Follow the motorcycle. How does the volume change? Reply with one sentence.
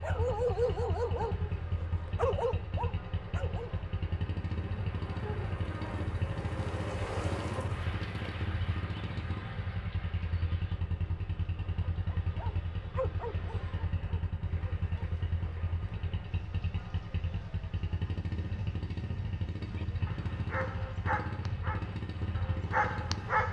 The volume of the motorcycle stays about the same.